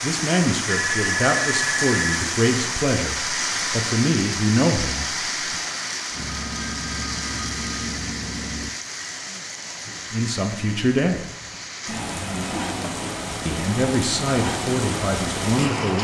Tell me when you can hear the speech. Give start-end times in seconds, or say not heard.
0.0-5.6, 10.1-11.2, 13.4-15.9.